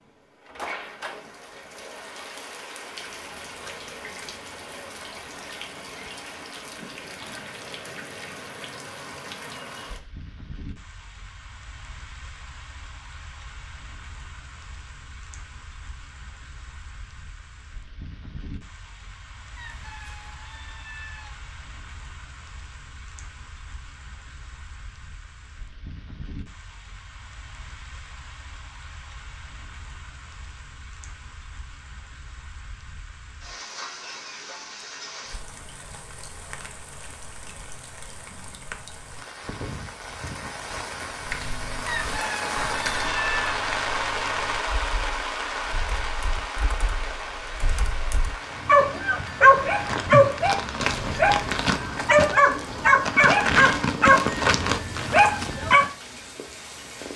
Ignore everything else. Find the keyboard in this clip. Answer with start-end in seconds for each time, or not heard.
41.1-48.4.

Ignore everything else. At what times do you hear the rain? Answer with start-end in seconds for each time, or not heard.
0.0-57.1.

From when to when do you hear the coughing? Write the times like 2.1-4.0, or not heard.
not heard.